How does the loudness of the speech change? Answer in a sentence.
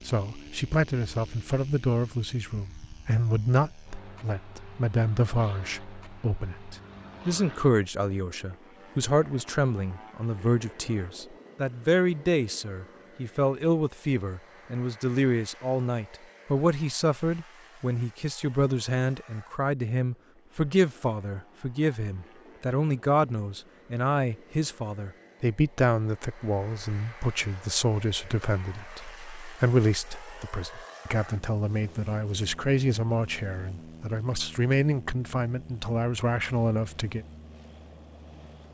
The loudness of the speech stays about the same.